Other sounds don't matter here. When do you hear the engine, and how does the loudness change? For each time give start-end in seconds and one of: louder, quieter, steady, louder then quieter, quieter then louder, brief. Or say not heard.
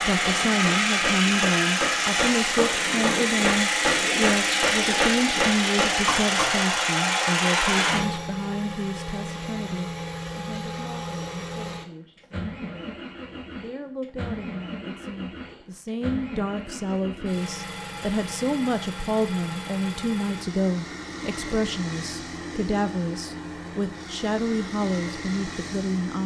0.0-26.2 quieter.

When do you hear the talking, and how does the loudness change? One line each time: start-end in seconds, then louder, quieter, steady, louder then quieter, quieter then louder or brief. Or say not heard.
0.0-26.2 quieter then louder.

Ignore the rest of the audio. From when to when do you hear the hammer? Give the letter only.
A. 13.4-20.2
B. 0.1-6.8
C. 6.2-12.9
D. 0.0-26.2
B.